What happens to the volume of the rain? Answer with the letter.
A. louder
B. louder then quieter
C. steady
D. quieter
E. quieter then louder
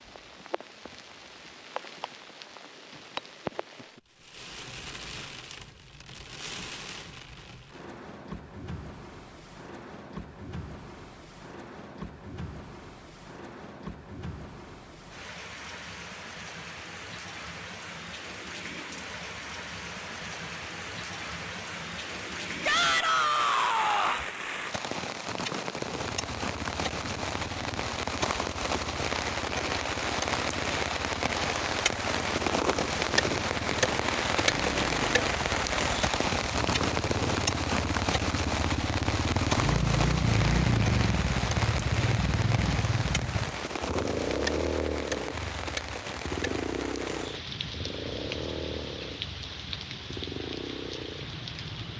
B.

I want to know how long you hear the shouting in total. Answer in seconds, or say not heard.
2 s.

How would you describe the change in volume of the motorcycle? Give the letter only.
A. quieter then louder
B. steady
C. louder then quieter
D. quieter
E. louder
C.